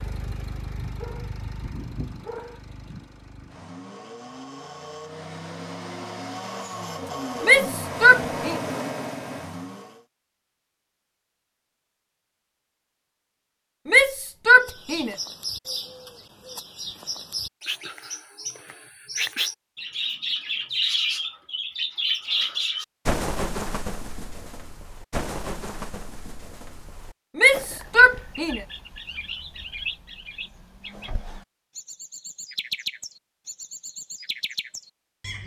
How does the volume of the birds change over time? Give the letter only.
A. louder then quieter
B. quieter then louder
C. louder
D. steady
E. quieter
A.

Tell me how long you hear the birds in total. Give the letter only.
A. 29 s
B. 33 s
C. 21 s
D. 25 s
C.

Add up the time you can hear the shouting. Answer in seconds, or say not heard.
4 s.